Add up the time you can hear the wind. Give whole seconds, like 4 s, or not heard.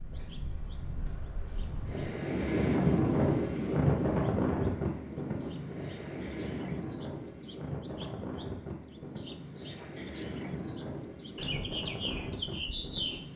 13 s.